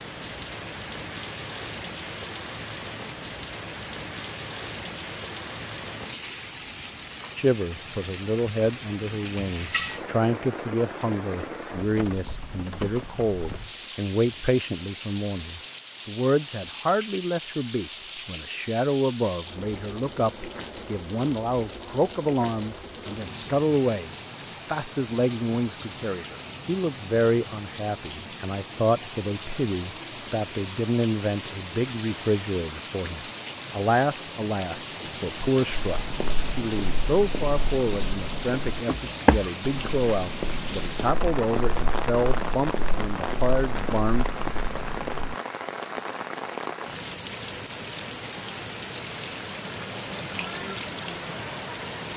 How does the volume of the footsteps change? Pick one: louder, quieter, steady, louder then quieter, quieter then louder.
louder then quieter.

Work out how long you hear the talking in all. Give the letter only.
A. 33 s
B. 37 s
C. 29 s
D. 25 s
B.